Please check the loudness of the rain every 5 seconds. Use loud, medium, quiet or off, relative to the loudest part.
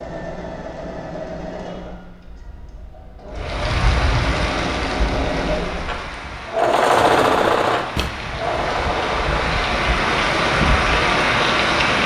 medium, medium, loud.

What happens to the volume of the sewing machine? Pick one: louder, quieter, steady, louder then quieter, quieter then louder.
louder then quieter.